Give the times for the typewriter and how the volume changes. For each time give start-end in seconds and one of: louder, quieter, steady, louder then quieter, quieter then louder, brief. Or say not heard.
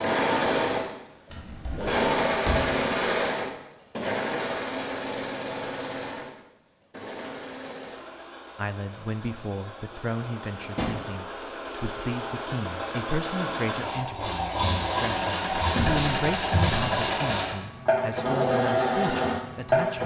not heard.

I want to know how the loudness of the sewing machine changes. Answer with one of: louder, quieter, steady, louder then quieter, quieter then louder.
quieter then louder.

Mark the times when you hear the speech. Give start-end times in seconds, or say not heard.
8.6-20.0.